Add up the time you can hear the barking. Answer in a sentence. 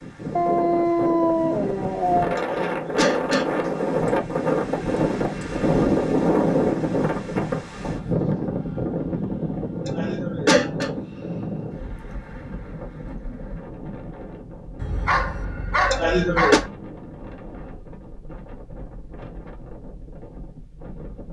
The barking can be heard for 4 seconds in total.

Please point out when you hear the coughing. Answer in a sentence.
You can hear the coughing from 2.5 to 3.5 s, from 9.8 to 10.9 s and from 15.9 to 16.6 s.